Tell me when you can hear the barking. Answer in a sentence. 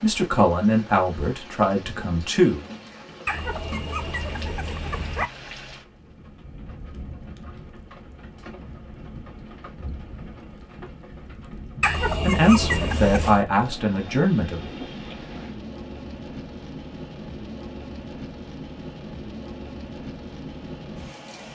The barking can be heard from 3.2 to 5.3 s and from 11.8 to 13.4 s.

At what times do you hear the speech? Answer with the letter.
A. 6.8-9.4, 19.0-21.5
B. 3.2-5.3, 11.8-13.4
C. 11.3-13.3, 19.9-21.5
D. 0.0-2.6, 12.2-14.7
D.